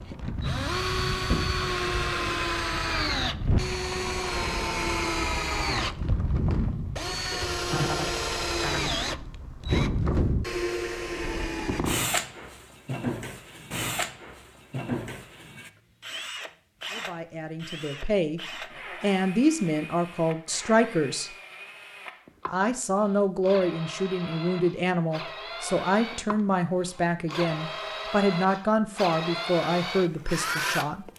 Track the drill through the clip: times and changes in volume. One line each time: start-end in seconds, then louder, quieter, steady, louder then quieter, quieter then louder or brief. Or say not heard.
0.0-31.1 quieter then louder.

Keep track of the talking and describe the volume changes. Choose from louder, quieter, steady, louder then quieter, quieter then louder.
steady.